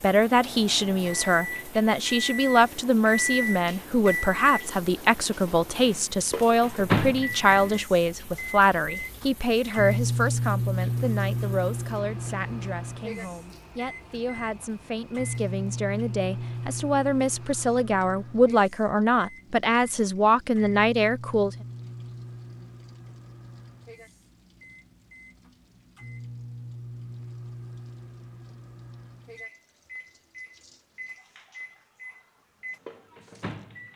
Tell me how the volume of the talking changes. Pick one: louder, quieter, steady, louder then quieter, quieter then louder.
quieter then louder.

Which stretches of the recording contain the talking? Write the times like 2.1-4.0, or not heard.
0.0-21.5.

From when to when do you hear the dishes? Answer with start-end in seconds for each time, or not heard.
not heard.